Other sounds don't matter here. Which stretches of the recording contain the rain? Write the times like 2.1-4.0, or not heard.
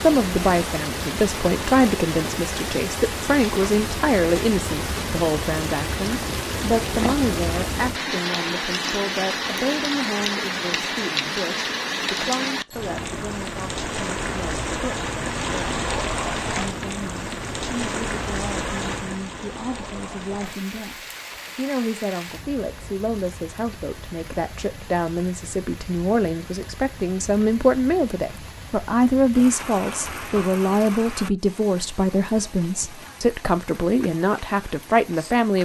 0.0-35.5.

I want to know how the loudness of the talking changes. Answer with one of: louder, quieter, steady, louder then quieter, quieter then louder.
quieter then louder.